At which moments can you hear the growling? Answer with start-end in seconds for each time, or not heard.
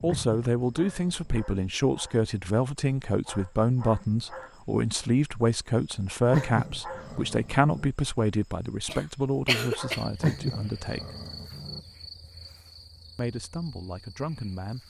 0.1-1.3, 6.3-7.9, 10.2-11.8.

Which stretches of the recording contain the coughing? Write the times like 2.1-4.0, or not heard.
8.8-10.1.